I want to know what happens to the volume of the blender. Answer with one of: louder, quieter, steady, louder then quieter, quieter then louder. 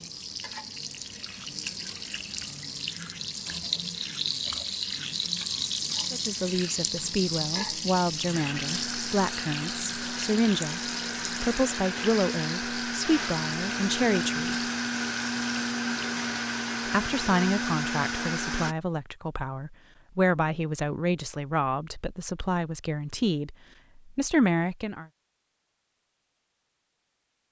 louder.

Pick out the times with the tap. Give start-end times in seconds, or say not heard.
0.0-16.2.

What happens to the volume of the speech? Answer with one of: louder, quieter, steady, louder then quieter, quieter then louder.
steady.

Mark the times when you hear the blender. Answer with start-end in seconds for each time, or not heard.
8.3-18.8.